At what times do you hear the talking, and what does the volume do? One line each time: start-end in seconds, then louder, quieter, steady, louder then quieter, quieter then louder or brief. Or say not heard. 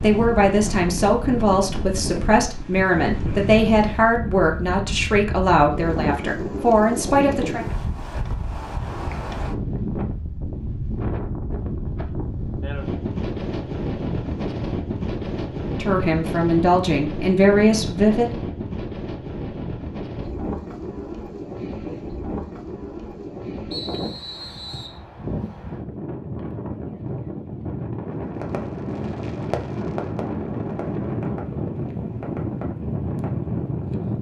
0.0-7.7 steady
15.8-18.4 brief.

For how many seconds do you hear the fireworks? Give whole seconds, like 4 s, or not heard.
5 s.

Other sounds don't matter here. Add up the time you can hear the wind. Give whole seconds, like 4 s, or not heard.
34 s.